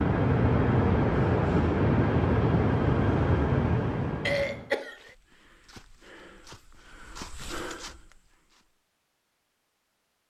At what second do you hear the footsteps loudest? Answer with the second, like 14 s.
8 s.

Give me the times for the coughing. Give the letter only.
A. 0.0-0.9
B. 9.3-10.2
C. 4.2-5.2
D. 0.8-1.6
C.